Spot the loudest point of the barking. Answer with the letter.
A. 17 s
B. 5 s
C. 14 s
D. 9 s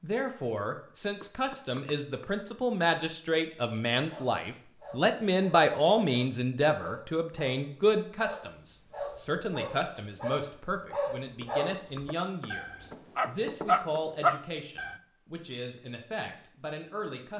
C.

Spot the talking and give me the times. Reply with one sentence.
You can hear the talking from 0.0 to 17.3 s.